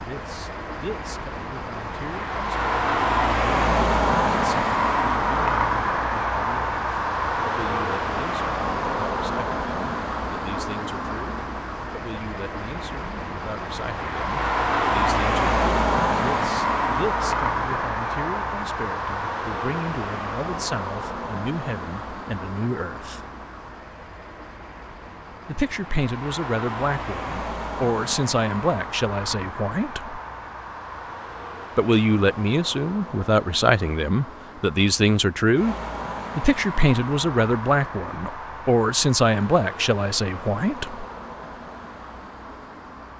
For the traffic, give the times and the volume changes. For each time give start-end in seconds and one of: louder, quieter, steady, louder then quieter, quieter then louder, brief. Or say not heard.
0.0-43.1 quieter.